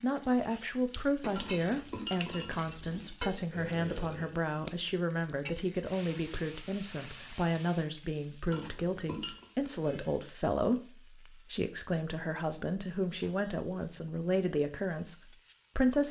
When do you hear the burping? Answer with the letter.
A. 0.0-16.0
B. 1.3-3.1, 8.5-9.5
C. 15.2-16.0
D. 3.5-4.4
D.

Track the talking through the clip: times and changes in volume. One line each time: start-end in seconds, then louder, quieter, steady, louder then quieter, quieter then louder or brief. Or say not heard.
0.0-16.0 steady.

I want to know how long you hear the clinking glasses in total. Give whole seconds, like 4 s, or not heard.
3 s.